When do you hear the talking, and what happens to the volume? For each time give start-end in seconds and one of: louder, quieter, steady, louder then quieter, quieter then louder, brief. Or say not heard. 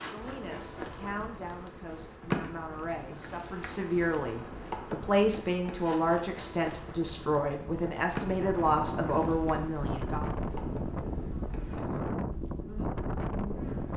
0.0-10.2 louder.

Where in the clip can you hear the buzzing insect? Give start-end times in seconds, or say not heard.
0.0-13.9.